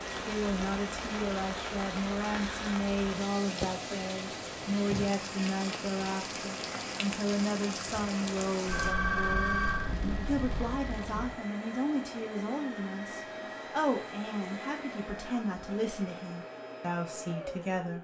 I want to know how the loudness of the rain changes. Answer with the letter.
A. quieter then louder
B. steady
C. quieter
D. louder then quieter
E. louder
B.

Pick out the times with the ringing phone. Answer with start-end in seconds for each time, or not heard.
8.7-10.7.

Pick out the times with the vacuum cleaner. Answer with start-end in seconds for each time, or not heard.
0.0-17.9.